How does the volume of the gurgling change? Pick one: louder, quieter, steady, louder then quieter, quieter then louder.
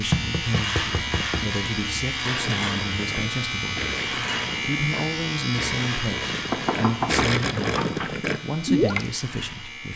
louder.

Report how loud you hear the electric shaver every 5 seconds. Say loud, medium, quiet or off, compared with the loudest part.
loud, medium.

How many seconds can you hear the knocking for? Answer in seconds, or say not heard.
3 s.